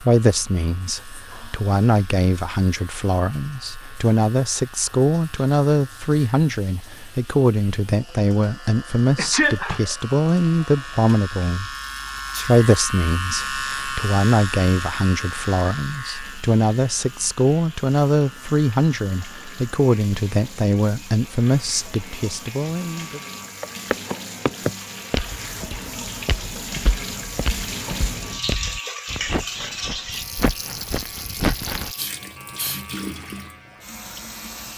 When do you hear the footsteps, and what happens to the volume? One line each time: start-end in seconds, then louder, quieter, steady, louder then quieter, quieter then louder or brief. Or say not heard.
23.6-31.9 quieter then louder.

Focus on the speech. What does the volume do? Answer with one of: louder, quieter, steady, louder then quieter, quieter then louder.
steady.